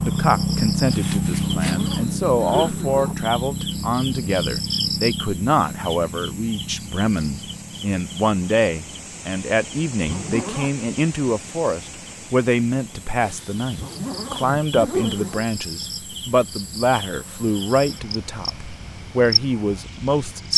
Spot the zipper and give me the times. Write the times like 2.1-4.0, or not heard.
1.6-3.2, 10.1-10.7, 13.8-15.4.